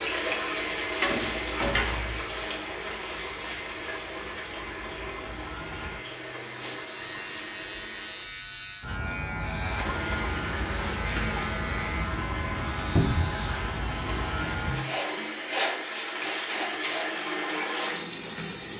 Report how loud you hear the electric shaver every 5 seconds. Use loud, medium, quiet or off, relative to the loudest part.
quiet, loud, loud, off.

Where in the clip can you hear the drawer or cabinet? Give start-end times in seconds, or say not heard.
1.0-2.2, 12.9-13.3.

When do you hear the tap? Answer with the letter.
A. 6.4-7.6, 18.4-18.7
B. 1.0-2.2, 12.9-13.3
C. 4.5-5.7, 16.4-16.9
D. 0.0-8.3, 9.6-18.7
D.